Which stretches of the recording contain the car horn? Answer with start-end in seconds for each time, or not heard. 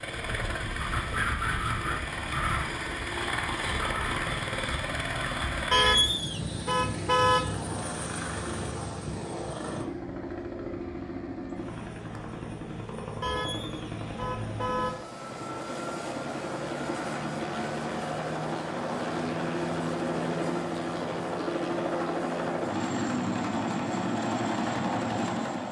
5.7-7.5, 13.2-15.1.